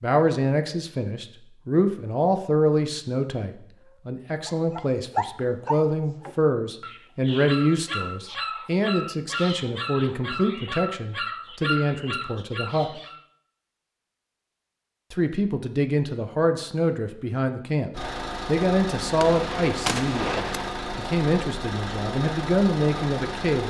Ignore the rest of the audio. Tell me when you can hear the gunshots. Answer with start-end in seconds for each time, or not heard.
19.1-20.7.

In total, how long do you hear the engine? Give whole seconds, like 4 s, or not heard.
6 s.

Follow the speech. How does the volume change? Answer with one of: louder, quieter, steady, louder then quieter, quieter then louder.
steady.